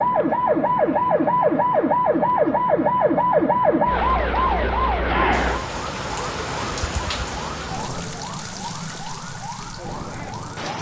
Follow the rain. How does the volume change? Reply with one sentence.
The volume of the rain goes down.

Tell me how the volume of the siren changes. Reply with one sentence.
The loudness of the siren goes down.